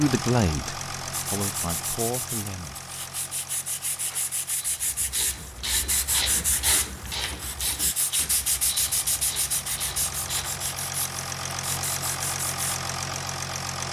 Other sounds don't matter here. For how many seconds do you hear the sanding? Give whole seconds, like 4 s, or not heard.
12 s.